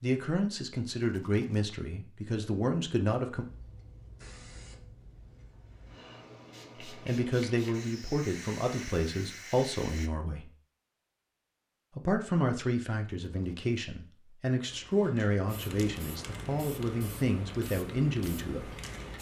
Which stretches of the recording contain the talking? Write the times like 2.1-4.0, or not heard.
0.0-3.5, 6.8-10.4, 11.9-18.7.